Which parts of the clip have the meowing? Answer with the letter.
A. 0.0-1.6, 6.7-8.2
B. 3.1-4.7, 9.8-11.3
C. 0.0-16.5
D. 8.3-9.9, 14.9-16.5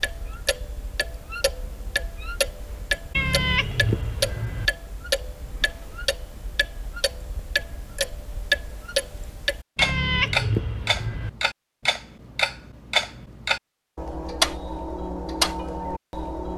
B.